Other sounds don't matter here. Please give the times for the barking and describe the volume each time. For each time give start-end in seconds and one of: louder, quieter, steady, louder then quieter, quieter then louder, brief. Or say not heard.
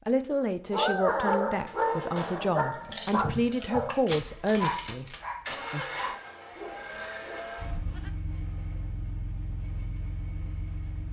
0.7-8.1 quieter.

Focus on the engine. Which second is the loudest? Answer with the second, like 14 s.
6 s.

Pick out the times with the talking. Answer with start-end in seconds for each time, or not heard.
0.1-5.9.